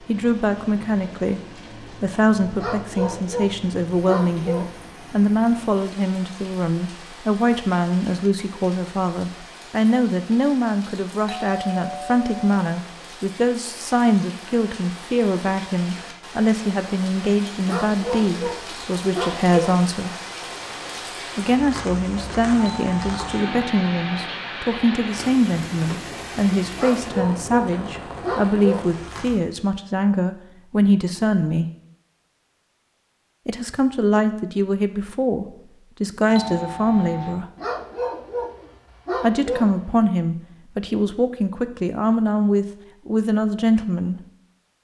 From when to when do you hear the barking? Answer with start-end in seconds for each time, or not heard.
2.5-4.8, 17.6-19.9, 26.8-28.9, 37.5-40.1.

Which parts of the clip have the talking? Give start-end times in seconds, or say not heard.
0.0-20.1, 21.4-31.7, 33.5-37.5, 39.2-44.2.